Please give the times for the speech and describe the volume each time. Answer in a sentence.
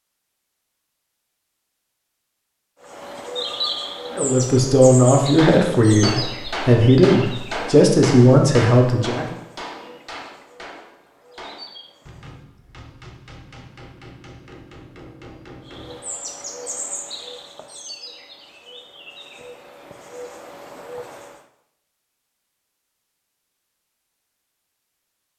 The speech can be heard from 4.1 to 9.3 s, at a steady volume.